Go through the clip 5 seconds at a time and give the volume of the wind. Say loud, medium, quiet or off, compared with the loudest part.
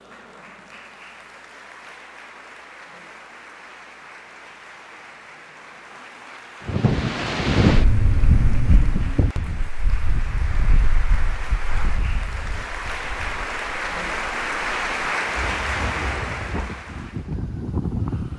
off, loud, quiet, medium.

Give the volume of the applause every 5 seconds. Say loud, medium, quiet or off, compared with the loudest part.
quiet, quiet, loud, loud.